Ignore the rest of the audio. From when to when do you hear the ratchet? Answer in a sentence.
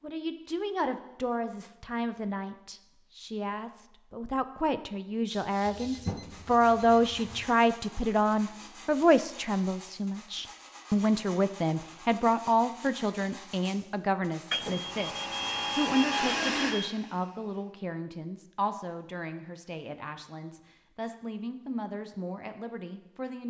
The ratchet can't be heard in this clip.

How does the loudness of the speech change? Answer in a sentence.
The volume of the speech goes up, then down.